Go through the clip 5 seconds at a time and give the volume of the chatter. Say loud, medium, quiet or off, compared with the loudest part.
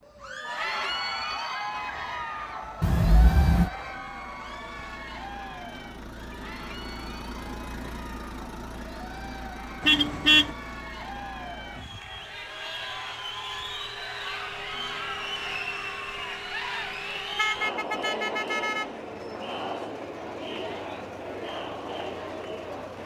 loud, medium, loud, loud, loud.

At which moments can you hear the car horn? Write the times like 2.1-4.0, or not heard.
2.8-3.7, 9.8-10.5, 17.4-18.9.